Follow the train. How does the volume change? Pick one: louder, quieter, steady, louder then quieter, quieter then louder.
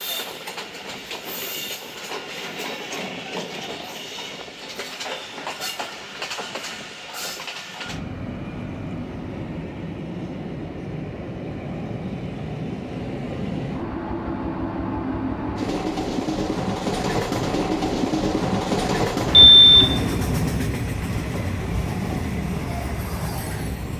louder.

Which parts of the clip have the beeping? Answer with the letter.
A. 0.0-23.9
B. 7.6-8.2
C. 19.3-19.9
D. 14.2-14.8
C.